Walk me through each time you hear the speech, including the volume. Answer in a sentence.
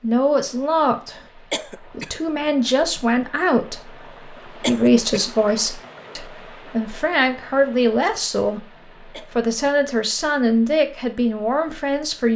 You can hear the speech from 0.0 to 12.3 s, at a steady volume.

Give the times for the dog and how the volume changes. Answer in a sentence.
The dog can't be heard in this clip.